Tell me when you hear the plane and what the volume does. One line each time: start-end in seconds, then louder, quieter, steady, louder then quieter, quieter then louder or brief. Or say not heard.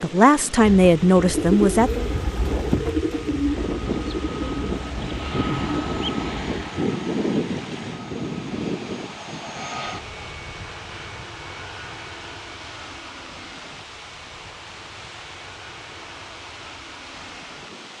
0.0-17.9 louder then quieter.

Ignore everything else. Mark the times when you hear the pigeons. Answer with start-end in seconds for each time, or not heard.
0.6-6.7.